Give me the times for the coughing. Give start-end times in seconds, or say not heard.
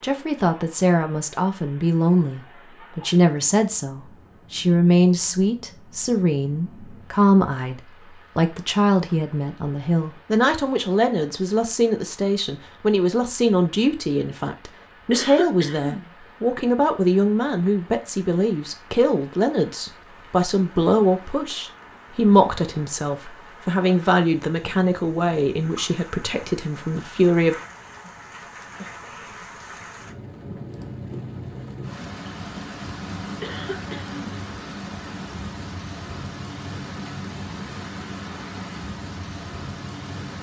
15.1-16.1, 33.4-34.1.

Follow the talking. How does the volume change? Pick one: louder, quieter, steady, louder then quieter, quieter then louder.
steady.